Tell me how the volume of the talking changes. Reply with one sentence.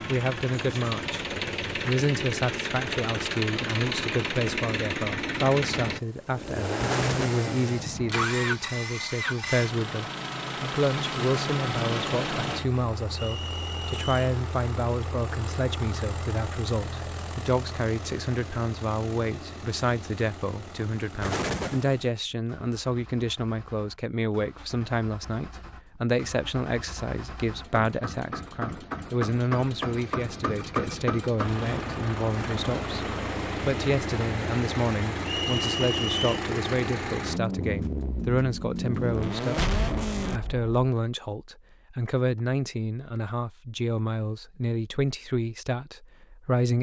The loudness of the talking stays about the same.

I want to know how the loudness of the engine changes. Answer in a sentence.
The loudness of the engine goes down, then up.